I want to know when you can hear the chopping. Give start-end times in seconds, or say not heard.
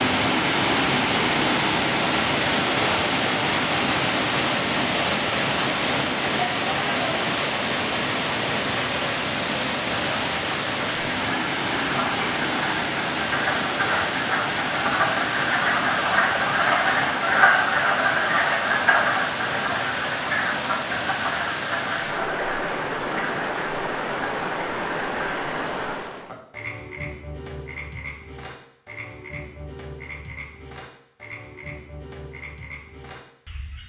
not heard.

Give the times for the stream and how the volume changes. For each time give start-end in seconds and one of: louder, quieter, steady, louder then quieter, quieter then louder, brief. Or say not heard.
0.0-26.4 quieter.